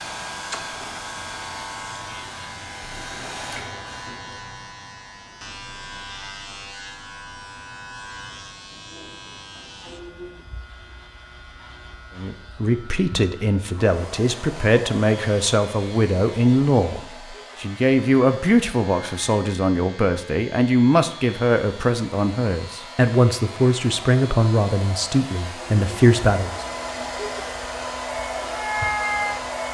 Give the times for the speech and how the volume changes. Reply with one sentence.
The speech can be heard from 12.2 to 26.6 s, at a steady volume.